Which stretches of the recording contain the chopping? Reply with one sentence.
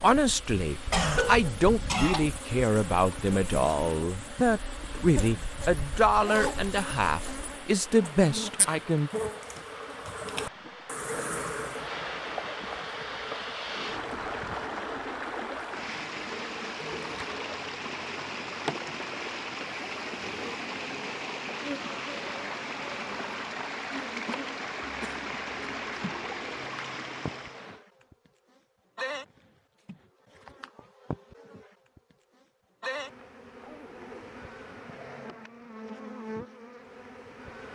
The chopping can't be heard in this clip.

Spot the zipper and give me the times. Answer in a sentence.
You can hear the zipper from 6.2 to 7.4 s and from 33.5 to 34.4 s.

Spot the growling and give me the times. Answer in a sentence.
You can't hear the growling here.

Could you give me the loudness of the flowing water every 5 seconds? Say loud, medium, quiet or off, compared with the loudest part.
medium, medium, loud, loud, loud, loud, off, off.